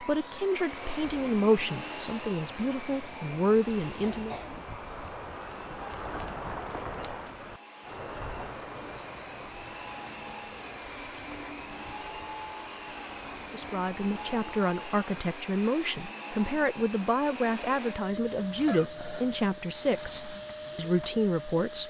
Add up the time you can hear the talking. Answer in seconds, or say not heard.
13 s.